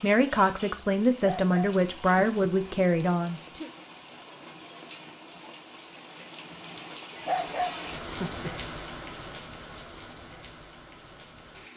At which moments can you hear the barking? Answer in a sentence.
The barking can be heard from 1.2 to 2.5 s and from 7.2 to 8.5 s.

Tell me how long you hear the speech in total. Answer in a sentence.
The speech can be heard for 4 seconds in total.